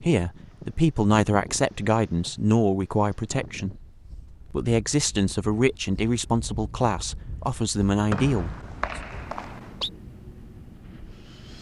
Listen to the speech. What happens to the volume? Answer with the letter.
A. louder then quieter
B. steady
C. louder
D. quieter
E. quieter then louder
B.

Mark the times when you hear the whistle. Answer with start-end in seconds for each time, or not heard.
8.1-9.9.